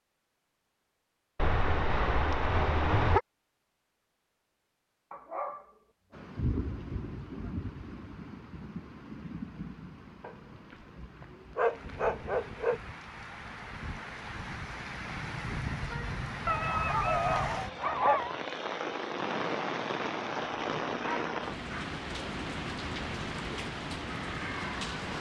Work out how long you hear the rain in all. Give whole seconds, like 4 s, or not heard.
19 s.